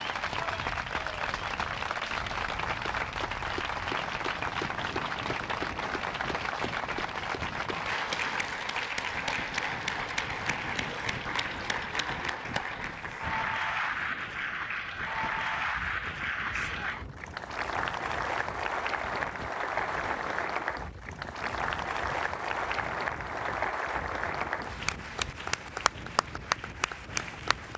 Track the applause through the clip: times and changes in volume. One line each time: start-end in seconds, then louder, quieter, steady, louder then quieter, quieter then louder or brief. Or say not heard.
0.0-27.7 steady.